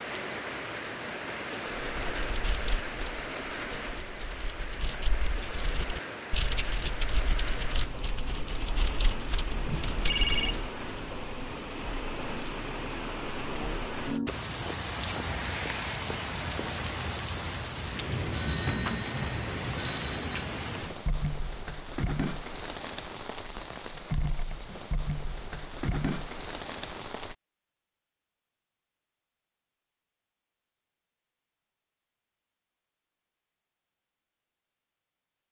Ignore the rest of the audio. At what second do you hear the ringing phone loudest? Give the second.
10 s.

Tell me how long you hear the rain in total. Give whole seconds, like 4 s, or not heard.
27 s.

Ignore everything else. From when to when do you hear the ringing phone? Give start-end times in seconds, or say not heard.
9.5-10.7, 18.3-20.4.